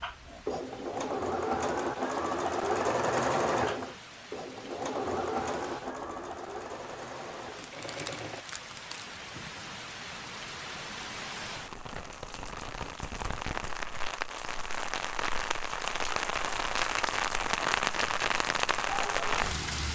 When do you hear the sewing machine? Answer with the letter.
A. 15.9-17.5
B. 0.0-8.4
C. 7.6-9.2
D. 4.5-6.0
B.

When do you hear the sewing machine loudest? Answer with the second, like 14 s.
3 s.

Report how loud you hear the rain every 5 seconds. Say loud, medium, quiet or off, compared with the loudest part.
quiet, quiet, medium, loud.